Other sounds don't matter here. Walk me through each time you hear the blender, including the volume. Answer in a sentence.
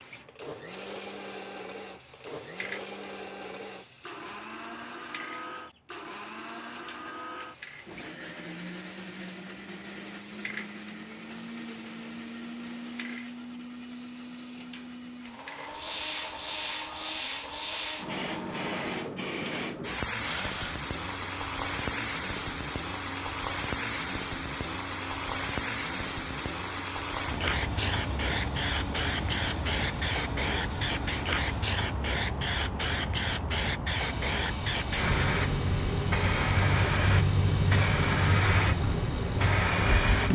You can hear the blender from 0.2 to 40.3 s, at a steady volume.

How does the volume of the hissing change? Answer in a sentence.
The loudness of the hissing goes up.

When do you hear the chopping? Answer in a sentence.
You can't hear the chopping here.